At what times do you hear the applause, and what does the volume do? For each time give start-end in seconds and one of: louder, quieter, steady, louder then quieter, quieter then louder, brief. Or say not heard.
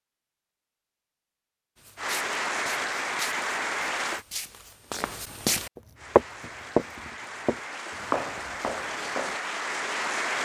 1.9-4.2 brief
6.0-10.4 louder.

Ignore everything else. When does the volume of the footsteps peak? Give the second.
6 s.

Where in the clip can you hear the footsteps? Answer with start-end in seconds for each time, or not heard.
1.8-9.4.